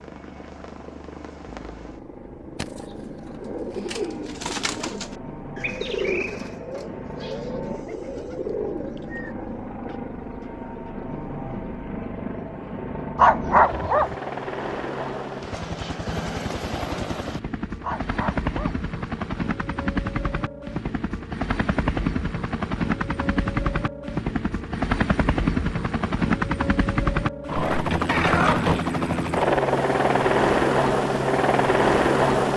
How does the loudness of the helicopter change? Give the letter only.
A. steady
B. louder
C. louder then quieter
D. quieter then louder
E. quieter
B.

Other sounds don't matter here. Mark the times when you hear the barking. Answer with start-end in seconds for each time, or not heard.
13.2-14.2, 17.8-18.8.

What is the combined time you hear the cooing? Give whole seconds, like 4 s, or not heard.
7 s.